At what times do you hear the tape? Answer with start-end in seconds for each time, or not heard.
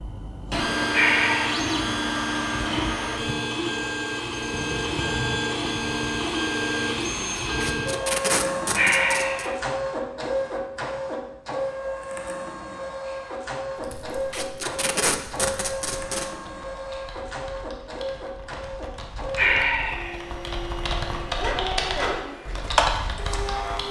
7.6-9.5, 14.3-16.3.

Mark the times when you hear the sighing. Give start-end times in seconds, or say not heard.
0.9-1.8, 8.8-9.6, 19.4-20.2.